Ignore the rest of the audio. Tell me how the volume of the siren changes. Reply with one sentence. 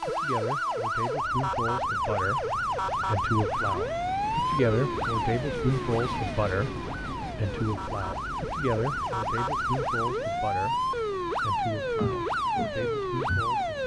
The volume of the siren goes down, then up.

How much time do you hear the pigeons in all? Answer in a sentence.
The pigeons can't be heard in this clip.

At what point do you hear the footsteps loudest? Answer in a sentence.
The loudest moment of the footsteps is at 12 seconds.